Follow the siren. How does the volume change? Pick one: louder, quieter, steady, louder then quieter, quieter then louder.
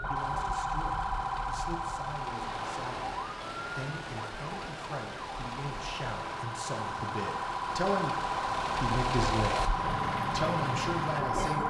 quieter then louder.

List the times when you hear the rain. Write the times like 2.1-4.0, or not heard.
2.2-11.3.